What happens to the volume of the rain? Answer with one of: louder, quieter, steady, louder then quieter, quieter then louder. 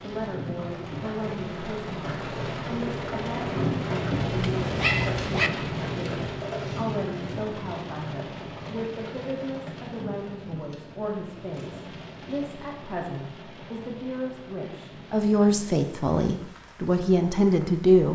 quieter.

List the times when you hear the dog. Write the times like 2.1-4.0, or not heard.
4.4-5.5.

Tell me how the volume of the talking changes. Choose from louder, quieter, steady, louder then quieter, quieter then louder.
louder.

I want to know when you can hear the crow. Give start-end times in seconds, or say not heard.
not heard.